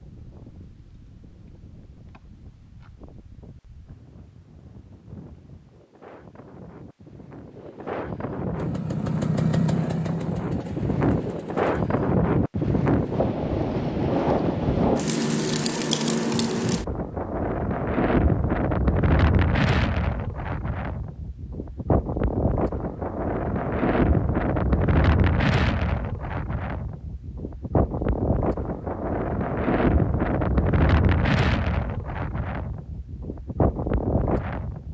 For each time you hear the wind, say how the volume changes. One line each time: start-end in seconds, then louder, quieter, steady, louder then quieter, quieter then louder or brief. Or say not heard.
0.0-34.8 louder.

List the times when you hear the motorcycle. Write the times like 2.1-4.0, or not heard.
8.6-11.8.